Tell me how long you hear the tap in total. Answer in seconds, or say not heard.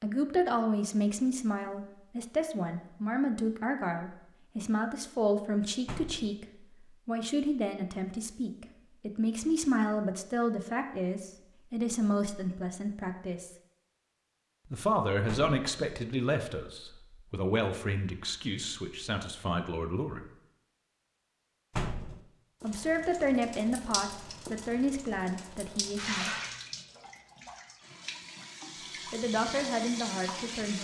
8 s.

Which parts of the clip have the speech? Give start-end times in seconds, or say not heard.
0.0-6.5, 7.0-13.6, 14.7-20.3, 22.6-26.3, 29.1-30.7.